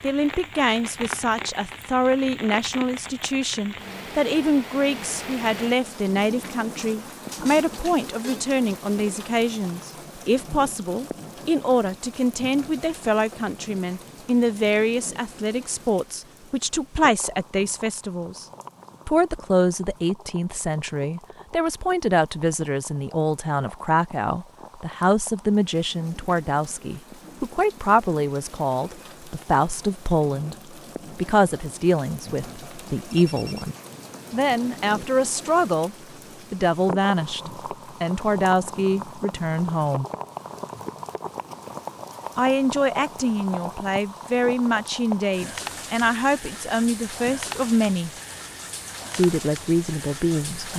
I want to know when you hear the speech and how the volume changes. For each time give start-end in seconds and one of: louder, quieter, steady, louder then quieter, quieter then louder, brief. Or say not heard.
0.0-18.4 steady
19.1-40.0 steady
42.4-48.1 steady
49.1-50.7 brief.